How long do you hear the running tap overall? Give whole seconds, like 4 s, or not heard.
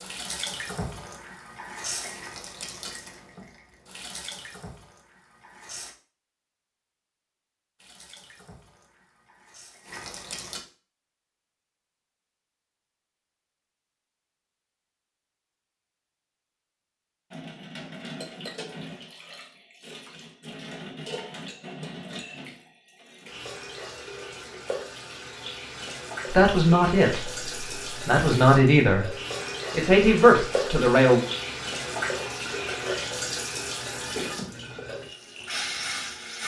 28 s.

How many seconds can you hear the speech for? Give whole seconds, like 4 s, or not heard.
4 s.